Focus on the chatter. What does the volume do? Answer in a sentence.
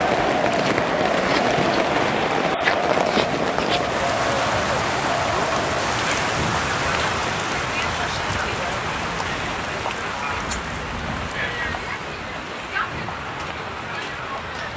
The volume of the chatter goes down.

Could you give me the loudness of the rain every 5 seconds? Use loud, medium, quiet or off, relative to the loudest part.
loud, loud, medium.